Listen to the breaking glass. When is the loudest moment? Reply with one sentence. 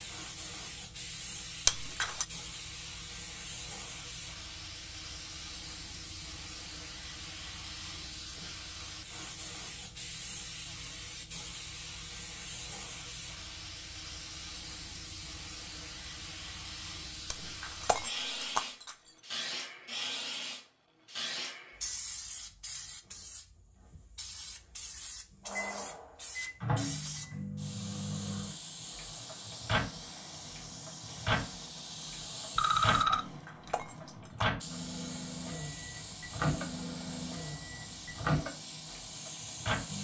The volume of the breaking glass peaks at 2 seconds.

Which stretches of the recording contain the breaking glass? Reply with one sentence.
You can hear the breaking glass from 1.6 to 2.2 s, from 17.3 to 19.2 s and from 33.2 to 34.6 s.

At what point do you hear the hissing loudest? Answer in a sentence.
The volume of the hissing peaks at 20 seconds.